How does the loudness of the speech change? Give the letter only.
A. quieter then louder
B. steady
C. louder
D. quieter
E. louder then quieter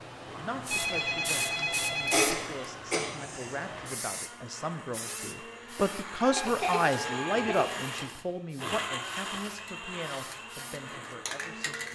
E.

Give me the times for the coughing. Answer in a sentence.
The coughing can be heard from 2.0 to 3.8 s and from 6.3 to 8.1 s.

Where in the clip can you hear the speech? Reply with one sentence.
The speech can be heard from 0.3 to 11.8 s.